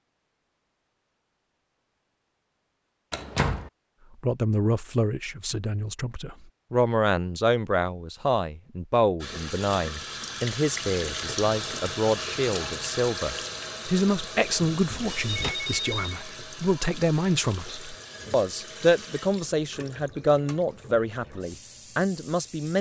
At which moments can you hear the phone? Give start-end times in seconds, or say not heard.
15.1-16.2.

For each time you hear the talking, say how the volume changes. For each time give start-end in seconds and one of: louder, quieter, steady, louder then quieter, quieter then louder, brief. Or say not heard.
4.2-22.7 steady.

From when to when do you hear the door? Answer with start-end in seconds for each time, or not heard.
3.1-3.7, 14.7-15.6.